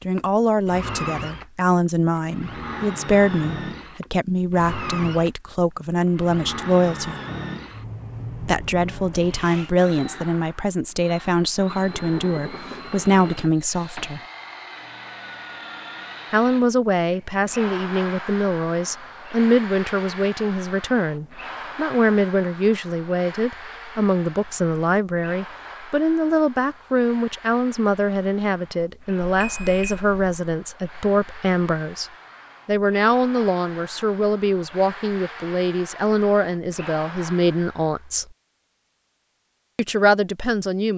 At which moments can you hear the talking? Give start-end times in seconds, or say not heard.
0.0-7.2, 8.4-14.2, 16.3-38.2, 39.8-40.9.